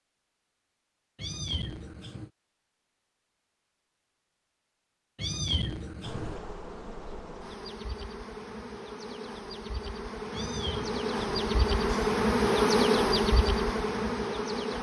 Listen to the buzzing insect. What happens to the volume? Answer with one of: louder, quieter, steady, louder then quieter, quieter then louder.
louder.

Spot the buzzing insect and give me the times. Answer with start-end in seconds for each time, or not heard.
6.0-14.7.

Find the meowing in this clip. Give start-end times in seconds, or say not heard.
1.1-2.3, 5.2-6.4, 10.3-12.2.